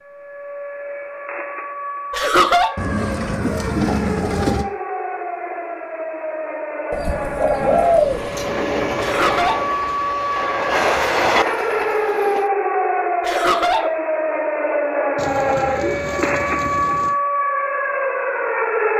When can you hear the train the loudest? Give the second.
11 s.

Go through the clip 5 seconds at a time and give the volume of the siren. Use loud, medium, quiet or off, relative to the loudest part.
medium, medium, loud, loud.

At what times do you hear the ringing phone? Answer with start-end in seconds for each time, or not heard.
not heard.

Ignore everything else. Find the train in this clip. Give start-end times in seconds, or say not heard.
7.5-12.5.